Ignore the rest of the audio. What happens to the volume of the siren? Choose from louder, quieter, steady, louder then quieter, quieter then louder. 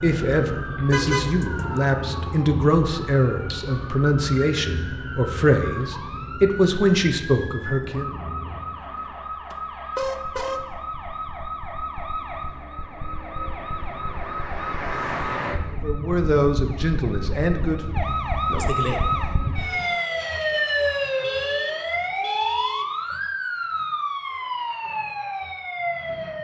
louder.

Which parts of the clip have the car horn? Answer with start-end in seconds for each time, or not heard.
0.9-1.8, 9.5-10.7, 21.2-22.9.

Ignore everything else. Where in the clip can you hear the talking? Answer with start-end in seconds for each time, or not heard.
0.0-8.2, 15.8-17.9.